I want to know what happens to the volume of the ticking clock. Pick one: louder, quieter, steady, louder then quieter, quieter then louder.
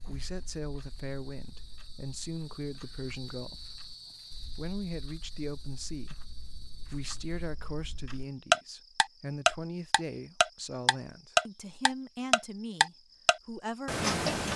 louder.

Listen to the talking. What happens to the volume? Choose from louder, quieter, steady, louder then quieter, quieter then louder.
steady.